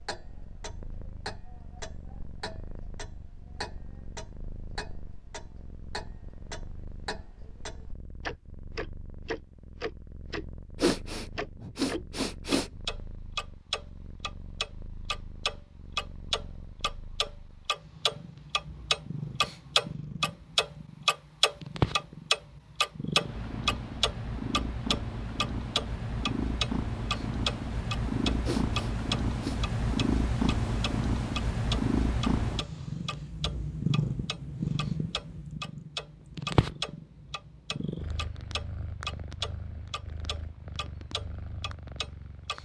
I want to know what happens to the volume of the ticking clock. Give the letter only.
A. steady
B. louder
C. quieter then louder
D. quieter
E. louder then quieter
E.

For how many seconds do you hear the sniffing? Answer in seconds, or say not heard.
3 s.